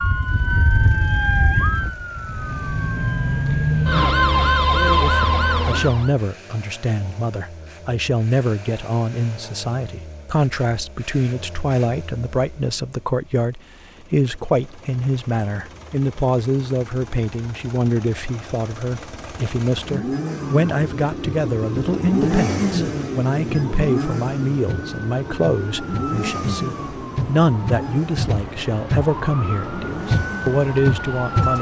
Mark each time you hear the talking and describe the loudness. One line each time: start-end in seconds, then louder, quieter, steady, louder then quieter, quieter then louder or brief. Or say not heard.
5.0-31.5 steady.